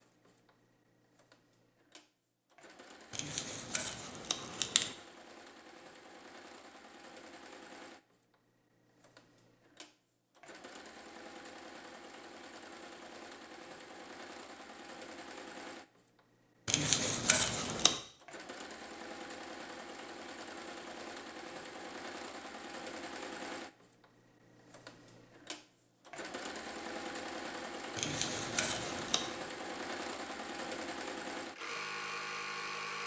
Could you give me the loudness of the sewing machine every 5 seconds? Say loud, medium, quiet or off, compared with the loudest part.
quiet, quiet, medium, medium, medium, loud, loud.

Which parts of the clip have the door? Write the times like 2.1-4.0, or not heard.
not heard.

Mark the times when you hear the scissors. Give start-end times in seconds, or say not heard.
3.1-4.9, 16.6-18.0, 27.9-29.4.